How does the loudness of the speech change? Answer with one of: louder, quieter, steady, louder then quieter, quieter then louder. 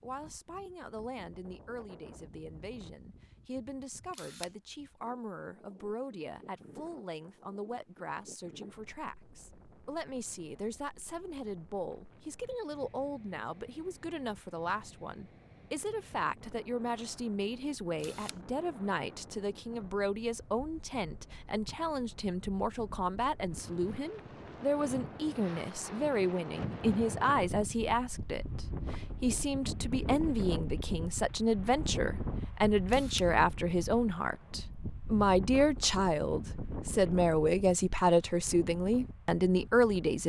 louder.